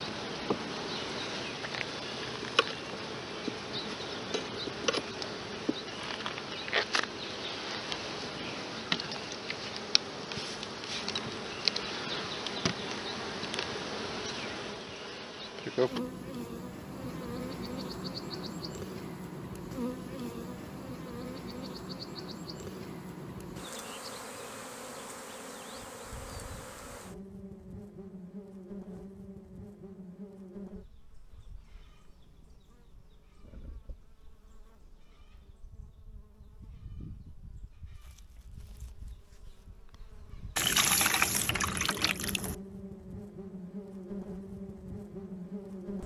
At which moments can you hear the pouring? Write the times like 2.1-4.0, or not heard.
40.5-42.5.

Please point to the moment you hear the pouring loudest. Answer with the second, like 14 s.
41 s.